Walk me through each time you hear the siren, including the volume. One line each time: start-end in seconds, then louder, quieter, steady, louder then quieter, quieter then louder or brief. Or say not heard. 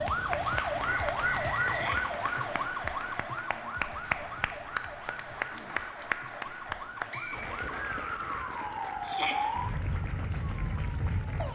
0.0-11.5 quieter then louder.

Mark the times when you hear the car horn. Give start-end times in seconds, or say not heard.
not heard.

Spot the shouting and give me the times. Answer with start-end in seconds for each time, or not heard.
1.6-2.1, 9.0-9.4.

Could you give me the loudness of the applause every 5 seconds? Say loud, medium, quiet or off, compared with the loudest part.
loud, loud, medium.